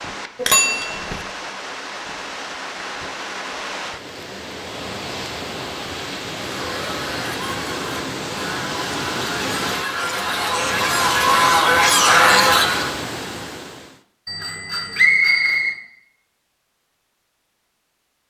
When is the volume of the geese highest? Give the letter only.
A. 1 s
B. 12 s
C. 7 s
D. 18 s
B.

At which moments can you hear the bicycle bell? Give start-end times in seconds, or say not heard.
0.3-1.2, 14.2-15.7.